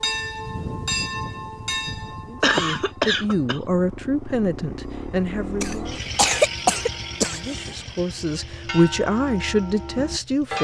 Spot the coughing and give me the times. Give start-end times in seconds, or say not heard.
2.4-3.6, 5.6-7.7.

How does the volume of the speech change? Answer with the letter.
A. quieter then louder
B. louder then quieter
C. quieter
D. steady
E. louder
A.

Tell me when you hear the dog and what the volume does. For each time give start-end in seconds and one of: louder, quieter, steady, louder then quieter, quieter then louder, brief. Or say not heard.
not heard.